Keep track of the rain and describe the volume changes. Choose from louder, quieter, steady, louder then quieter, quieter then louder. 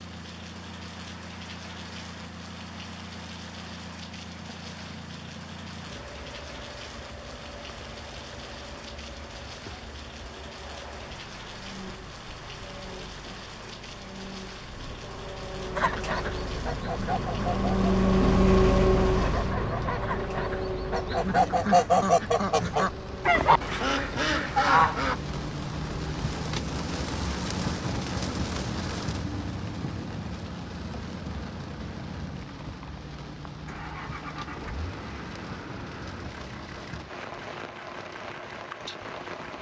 louder then quieter.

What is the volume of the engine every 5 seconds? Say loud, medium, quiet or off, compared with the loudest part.
quiet, quiet, quiet, loud, medium, quiet, quiet, quiet.